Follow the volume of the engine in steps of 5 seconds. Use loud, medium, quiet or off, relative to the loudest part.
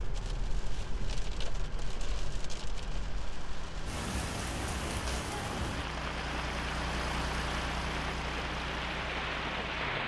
medium, loud.